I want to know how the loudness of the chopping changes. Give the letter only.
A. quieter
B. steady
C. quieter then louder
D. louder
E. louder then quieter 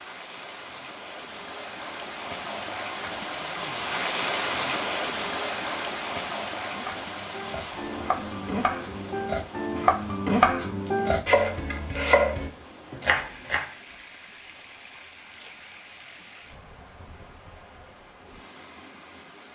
D.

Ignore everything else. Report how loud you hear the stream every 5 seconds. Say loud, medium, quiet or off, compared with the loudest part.
loud, loud, quiet, quiet.